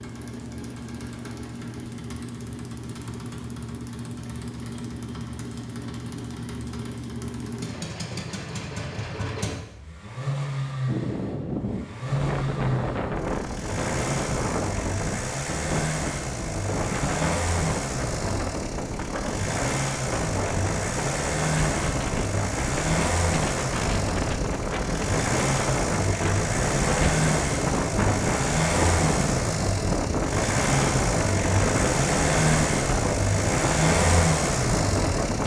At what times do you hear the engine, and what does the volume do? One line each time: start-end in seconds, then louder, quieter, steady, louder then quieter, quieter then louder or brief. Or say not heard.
0.0-35.4 louder.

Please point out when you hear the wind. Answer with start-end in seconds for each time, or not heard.
10.8-35.4.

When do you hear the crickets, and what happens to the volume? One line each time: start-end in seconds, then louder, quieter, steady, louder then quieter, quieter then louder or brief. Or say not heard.
not heard.